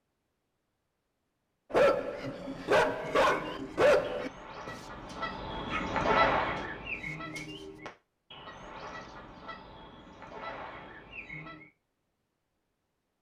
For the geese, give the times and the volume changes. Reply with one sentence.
The geese can be heard from 3.1 to 11.7 s, getting louder then quieter.